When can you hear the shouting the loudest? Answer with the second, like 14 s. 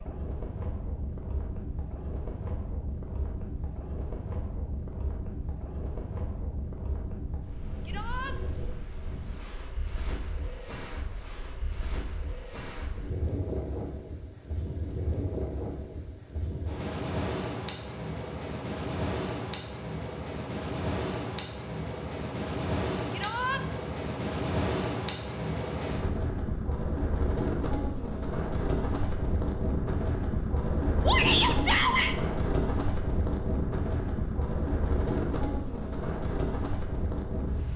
31 s.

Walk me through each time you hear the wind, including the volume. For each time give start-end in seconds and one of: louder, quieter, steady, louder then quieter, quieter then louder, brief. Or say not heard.
0.0-37.7 louder.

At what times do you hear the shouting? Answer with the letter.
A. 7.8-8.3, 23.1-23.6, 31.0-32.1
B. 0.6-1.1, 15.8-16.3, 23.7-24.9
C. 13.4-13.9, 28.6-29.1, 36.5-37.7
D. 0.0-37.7
A.